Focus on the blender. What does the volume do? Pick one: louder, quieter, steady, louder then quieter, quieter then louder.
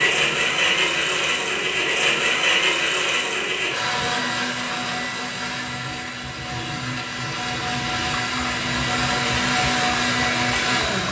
quieter then louder.